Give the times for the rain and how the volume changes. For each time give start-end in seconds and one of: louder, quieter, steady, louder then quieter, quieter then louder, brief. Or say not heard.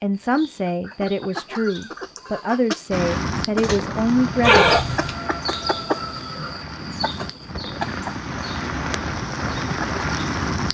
2.9-10.7 quieter then louder.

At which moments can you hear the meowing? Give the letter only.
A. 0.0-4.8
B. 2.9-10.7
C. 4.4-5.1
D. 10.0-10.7
C.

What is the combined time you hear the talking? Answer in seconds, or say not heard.
5 s.